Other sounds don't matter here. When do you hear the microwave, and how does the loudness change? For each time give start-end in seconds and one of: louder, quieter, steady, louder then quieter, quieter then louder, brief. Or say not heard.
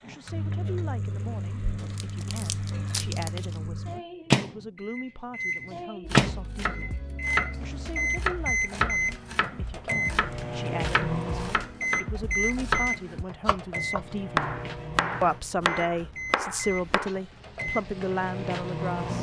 0.1-19.1 louder then quieter.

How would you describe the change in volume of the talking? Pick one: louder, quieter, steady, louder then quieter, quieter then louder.
louder.